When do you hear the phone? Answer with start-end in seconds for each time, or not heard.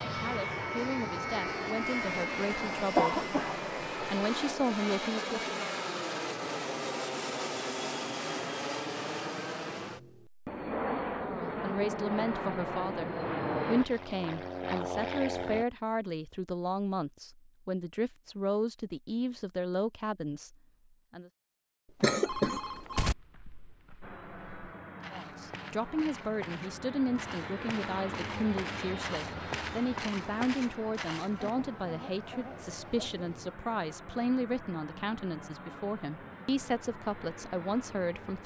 21.9-23.1.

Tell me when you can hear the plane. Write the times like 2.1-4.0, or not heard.
0.0-15.7, 24.0-38.4.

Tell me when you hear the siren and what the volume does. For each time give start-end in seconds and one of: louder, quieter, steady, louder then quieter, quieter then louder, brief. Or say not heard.
not heard.